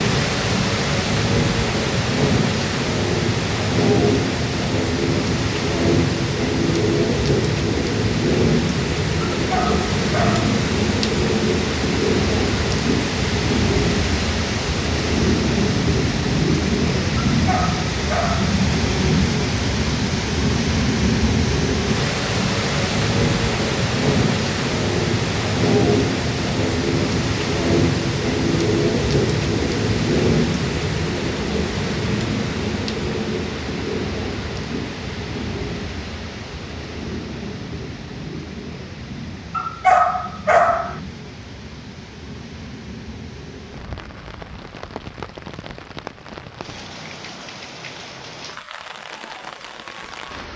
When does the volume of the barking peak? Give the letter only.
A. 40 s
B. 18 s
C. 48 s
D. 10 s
A.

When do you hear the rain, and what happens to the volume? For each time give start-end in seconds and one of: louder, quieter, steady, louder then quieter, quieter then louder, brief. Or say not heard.
0.0-50.5 quieter.